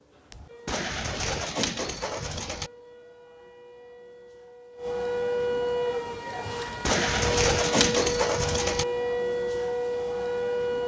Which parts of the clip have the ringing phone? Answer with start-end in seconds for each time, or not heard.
not heard.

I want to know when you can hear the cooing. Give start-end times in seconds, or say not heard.
0.7-2.7, 6.8-8.8.